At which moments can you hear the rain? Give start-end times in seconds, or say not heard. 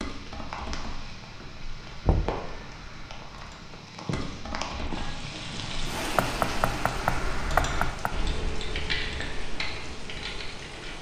0.0-10.9.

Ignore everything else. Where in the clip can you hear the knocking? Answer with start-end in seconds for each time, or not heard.
2.0-2.5, 6.2-8.1.